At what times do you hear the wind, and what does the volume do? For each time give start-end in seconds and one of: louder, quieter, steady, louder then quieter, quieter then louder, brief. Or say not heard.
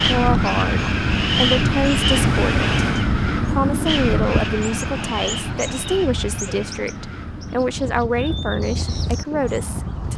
0.0-10.1 quieter.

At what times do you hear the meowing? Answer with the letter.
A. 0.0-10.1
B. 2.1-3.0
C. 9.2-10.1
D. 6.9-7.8
B.